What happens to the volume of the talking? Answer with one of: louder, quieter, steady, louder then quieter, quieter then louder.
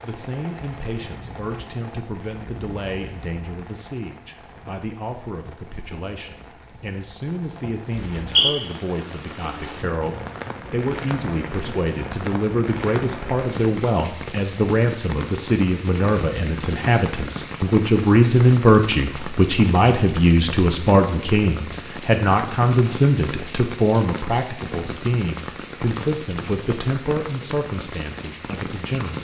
louder then quieter.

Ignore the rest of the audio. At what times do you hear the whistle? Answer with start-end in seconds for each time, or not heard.
8.0-8.5.